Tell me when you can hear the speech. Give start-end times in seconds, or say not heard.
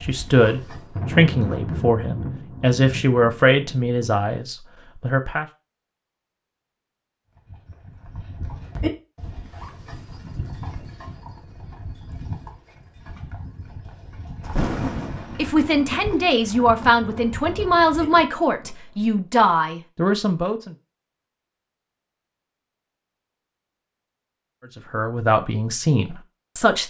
0.0-5.5, 15.3-20.8, 24.8-26.8.